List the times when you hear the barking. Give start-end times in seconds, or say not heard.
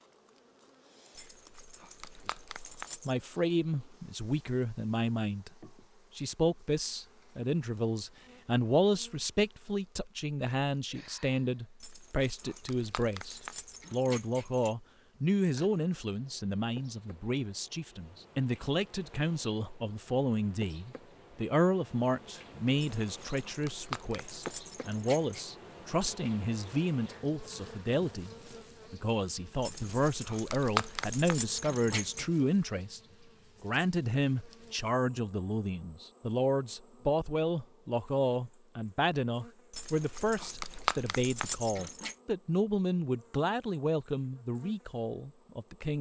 1.1-3.1, 11.8-14.8, 22.8-25.4, 29.6-32.2, 39.7-42.1.